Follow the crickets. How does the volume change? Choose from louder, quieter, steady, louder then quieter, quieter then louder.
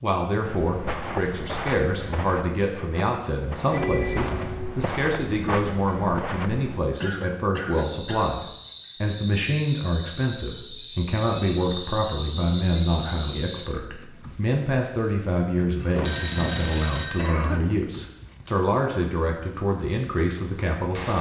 louder.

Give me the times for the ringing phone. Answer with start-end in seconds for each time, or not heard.
3.7-4.8, 15.8-17.3.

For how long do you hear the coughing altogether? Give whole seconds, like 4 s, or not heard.
3 s.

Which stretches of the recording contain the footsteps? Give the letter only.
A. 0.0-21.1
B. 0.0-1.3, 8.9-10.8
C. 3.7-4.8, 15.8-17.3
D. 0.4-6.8
D.